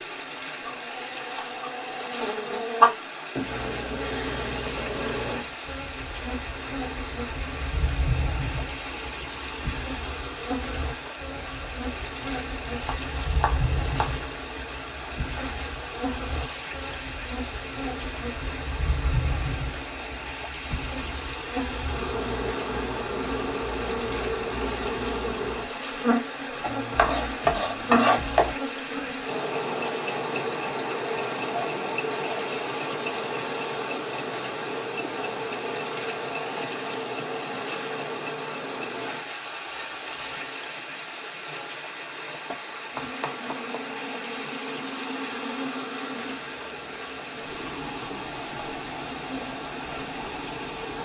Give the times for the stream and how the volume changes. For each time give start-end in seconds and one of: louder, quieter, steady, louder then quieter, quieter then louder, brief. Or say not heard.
0.0-50.9 steady.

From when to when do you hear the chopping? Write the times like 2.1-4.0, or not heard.
12.7-14.1, 26.6-28.6, 41.4-43.9.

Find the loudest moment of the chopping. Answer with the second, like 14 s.
28 s.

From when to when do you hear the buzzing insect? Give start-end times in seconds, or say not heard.
0.1-50.9.